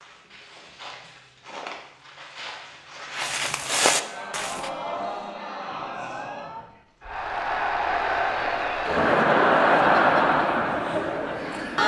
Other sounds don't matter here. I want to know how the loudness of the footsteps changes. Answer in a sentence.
The loudness of the footsteps goes up.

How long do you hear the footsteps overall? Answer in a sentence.
You can hear the footsteps for 5 seconds altogether.